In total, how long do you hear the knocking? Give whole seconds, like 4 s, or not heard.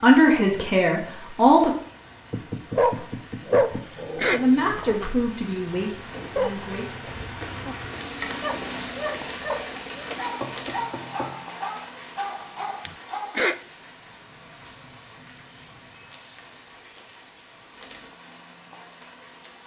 3 s.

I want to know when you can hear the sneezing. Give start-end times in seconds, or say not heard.
3.7-4.4, 12.8-13.6.